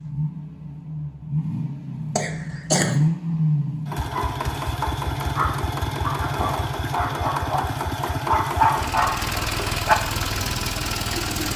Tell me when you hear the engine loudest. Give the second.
3 s.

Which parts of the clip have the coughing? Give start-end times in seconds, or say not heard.
2.1-3.0.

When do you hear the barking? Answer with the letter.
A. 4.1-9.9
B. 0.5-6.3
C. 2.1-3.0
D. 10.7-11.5
A.